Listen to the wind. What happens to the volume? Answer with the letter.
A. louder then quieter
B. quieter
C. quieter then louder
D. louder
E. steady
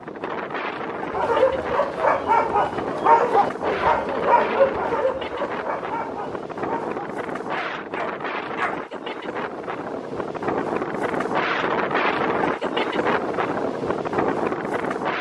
D.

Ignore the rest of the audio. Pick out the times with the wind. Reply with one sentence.
You can hear the wind from 0.0 to 15.1 s.